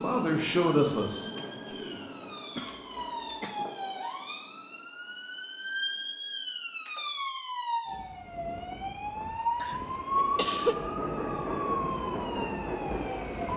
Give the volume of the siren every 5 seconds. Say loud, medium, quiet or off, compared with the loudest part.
medium, loud, loud.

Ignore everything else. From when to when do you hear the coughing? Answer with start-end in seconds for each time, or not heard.
2.5-3.5, 9.6-10.8.